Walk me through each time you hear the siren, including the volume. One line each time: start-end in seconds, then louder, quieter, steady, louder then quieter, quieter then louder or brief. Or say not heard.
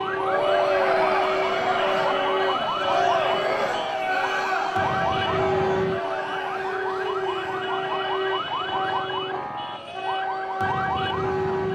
0.0-11.6 steady.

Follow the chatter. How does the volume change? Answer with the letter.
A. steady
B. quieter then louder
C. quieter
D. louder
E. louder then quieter
C.